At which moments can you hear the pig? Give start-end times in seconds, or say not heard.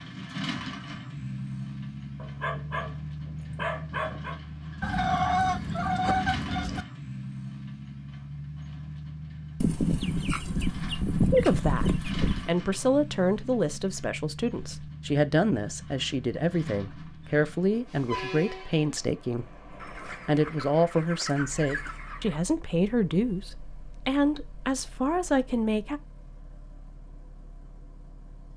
not heard.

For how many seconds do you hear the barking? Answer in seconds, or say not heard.
2 s.